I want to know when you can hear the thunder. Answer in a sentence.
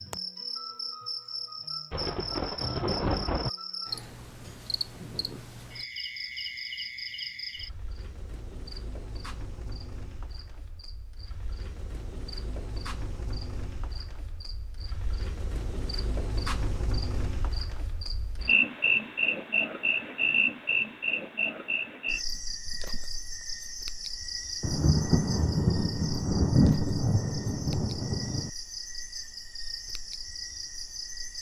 The thunder can be heard from 1.9 to 3.5 s and from 24.6 to 28.5 s.